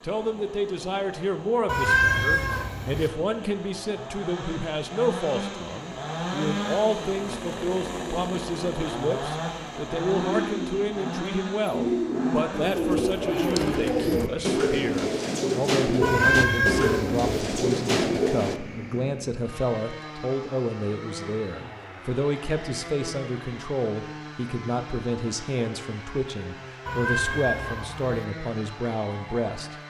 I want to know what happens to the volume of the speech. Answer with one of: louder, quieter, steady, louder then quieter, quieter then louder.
steady.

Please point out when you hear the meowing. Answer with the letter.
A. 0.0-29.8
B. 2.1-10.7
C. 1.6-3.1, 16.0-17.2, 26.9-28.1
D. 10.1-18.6
C.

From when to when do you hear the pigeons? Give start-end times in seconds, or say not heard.
10.1-18.6.